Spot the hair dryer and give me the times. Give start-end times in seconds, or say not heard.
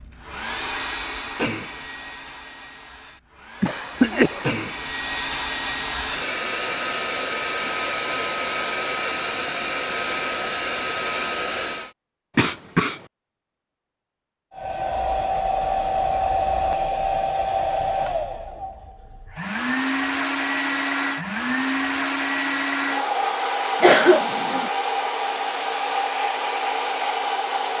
0.0-11.9, 14.5-27.7.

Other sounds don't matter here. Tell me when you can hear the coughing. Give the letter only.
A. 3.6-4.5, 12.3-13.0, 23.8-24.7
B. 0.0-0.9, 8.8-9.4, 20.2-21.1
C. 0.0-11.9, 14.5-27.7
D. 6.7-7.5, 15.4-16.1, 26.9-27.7
A.